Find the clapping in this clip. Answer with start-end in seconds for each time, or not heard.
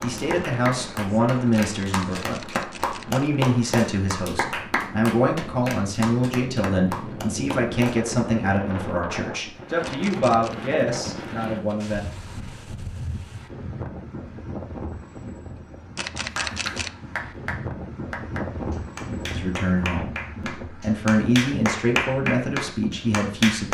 0.0-8.1, 16.4-23.6.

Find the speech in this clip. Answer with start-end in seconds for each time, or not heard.
0.0-12.0, 19.3-23.6.